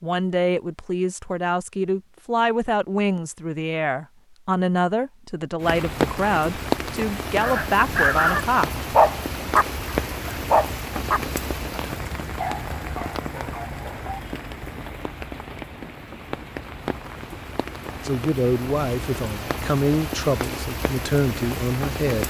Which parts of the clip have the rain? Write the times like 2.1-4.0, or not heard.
5.6-22.2.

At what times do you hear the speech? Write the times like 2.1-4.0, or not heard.
0.0-8.8, 18.0-22.2.